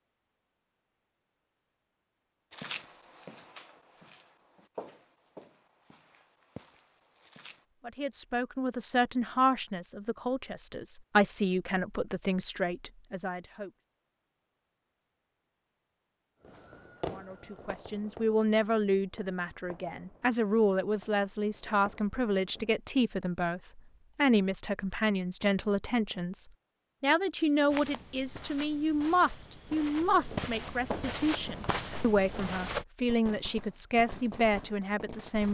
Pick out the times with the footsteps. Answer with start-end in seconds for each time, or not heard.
2.5-7.7, 27.6-32.9.